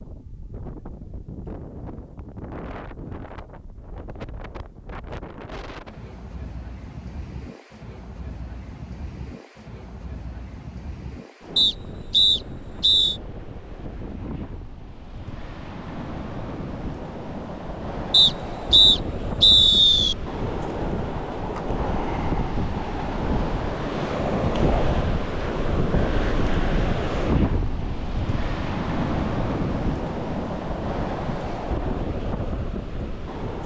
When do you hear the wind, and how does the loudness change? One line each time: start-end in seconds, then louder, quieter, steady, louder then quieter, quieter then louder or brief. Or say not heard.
0.0-33.6 louder.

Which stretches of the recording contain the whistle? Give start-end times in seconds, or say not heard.
11.6-13.2, 18.1-20.1.